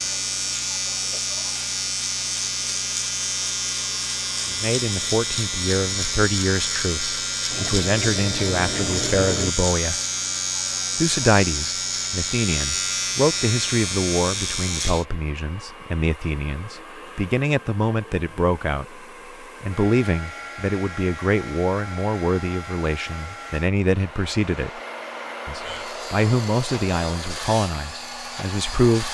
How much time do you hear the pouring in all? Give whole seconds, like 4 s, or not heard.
2 s.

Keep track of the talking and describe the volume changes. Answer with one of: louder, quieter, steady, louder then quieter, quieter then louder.
steady.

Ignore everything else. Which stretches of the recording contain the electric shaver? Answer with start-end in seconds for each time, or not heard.
0.0-15.1, 25.6-29.0.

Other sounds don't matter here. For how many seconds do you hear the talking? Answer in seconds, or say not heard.
23 s.